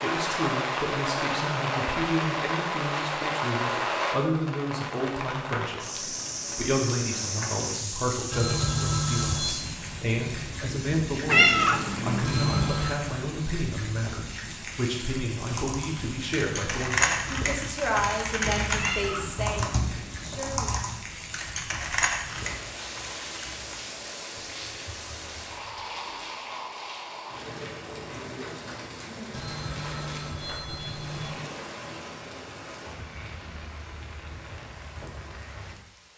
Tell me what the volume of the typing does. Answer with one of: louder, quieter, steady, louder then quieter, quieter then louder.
quieter.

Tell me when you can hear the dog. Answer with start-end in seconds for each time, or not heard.
not heard.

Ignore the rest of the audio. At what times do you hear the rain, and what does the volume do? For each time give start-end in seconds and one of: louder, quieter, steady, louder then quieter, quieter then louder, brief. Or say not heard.
0.0-36.1 quieter.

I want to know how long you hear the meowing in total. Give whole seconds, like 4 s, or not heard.
3 s.